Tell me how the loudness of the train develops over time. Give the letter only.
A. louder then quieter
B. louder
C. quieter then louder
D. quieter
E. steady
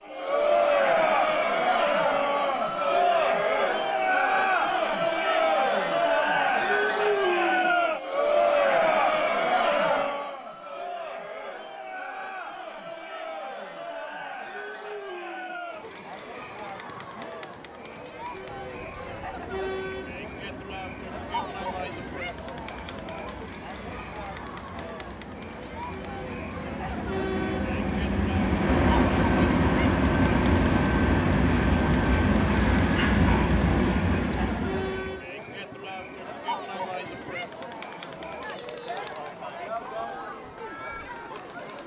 B.